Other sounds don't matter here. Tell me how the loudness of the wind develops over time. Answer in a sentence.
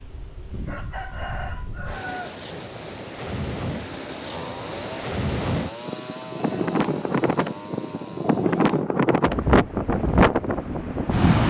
The loudness of the wind goes up.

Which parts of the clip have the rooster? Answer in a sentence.
The rooster can be heard from 0.7 to 2.4 s.